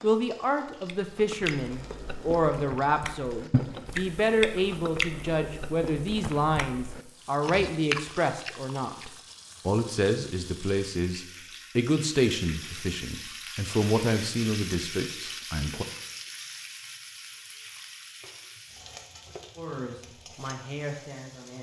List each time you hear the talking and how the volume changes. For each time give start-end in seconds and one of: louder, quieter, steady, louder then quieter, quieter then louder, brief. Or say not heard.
0.0-15.8 steady
19.6-21.5 brief.